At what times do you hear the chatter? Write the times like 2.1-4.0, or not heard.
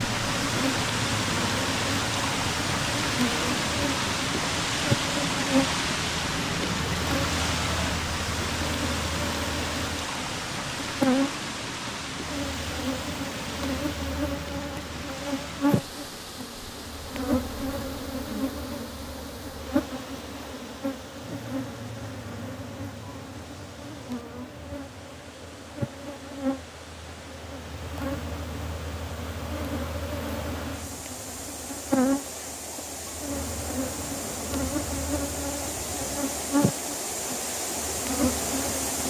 not heard.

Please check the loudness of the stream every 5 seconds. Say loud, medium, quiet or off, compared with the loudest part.
loud, loud, medium, quiet, quiet, quiet, medium, medium.